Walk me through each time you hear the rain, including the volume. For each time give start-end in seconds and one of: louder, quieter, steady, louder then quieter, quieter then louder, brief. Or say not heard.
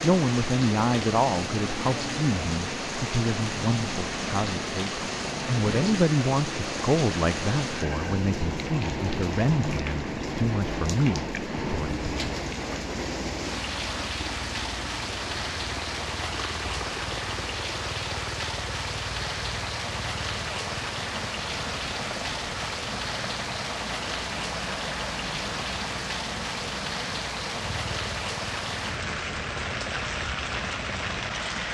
0.0-31.6 steady.